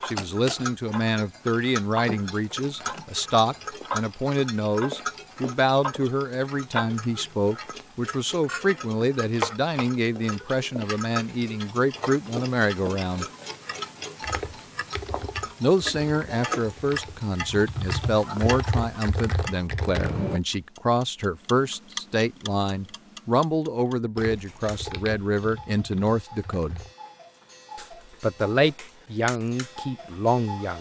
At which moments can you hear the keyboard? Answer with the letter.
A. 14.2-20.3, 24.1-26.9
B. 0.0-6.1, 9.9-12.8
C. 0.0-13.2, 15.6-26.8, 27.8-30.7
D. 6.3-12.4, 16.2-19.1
A.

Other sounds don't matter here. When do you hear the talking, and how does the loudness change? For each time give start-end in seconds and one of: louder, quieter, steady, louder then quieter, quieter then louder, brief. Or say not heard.
0.0-13.2 steady
15.6-26.8 steady
27.8-30.7 brief.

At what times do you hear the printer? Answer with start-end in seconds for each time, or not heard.
not heard.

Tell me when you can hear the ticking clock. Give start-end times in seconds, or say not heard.
0.0-30.7.